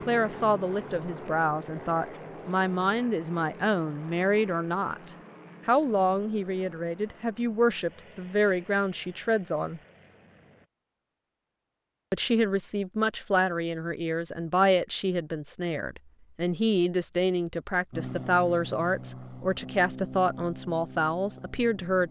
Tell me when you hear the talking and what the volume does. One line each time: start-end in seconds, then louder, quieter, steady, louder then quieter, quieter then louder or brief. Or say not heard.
0.0-9.8 steady
12.1-22.0 steady.